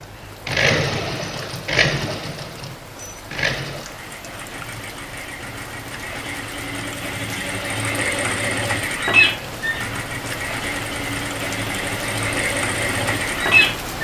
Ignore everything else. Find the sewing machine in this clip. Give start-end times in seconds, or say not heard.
0.0-13.9.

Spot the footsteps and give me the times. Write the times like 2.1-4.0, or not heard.
not heard.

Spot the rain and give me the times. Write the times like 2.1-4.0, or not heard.
0.0-13.9.